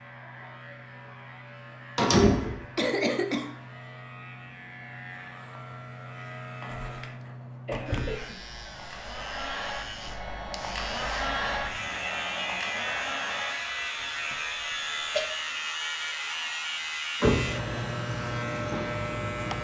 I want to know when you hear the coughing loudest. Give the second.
3 s.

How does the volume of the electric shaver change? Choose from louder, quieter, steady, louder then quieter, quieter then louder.
louder.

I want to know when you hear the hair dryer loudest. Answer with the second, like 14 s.
11 s.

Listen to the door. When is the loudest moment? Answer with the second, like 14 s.
2 s.